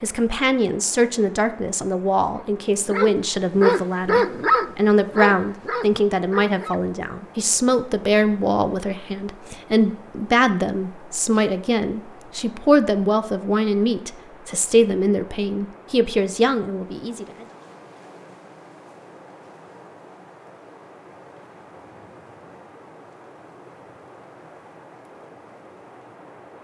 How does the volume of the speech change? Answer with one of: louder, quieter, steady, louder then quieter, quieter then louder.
steady.